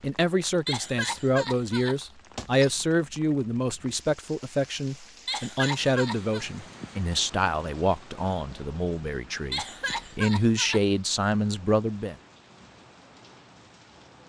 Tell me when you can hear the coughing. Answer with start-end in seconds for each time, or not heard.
0.7-2.8, 5.2-6.5, 9.5-10.8.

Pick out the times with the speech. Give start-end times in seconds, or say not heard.
0.0-12.2.